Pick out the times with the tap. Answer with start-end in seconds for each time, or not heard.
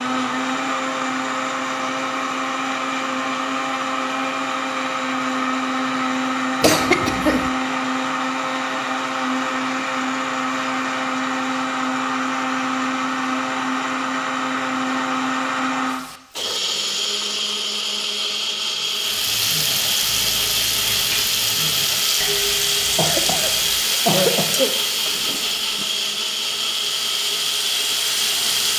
18.9-28.7.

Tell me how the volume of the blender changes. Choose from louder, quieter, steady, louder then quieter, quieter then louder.
steady.